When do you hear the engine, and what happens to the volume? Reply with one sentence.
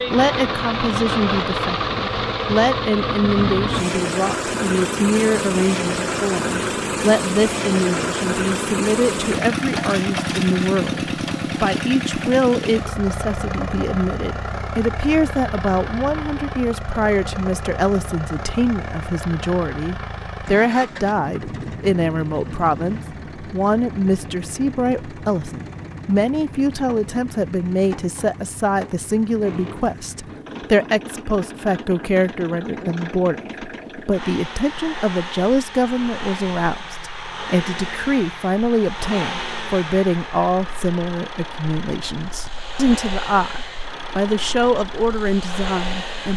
The engine can be heard from 0.0 to 46.3 s, getting quieter.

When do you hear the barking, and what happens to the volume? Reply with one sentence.
You can't hear the barking here.